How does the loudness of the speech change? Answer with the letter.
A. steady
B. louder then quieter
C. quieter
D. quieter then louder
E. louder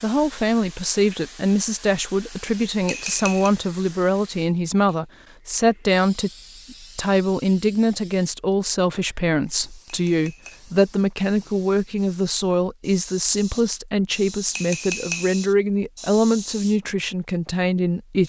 A.